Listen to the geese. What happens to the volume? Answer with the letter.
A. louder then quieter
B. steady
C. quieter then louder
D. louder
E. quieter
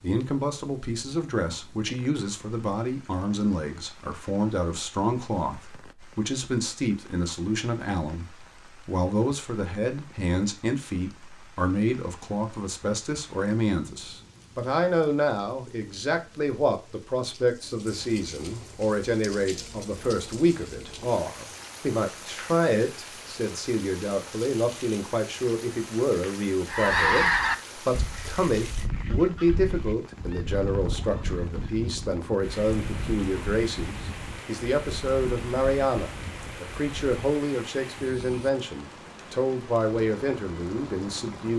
E.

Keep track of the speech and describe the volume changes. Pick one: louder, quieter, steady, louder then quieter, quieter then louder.
steady.